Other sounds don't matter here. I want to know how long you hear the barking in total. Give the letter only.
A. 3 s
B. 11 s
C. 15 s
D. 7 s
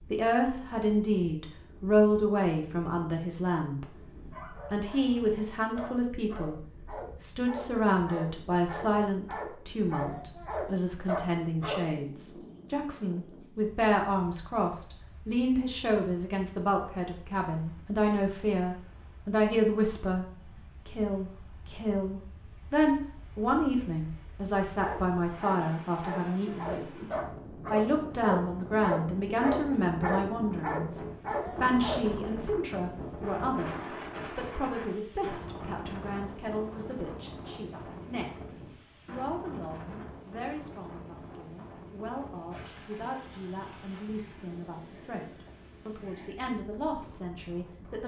C.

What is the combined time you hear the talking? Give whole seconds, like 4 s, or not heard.
45 s.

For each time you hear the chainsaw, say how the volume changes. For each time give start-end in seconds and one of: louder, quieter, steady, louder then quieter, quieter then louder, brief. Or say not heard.
not heard.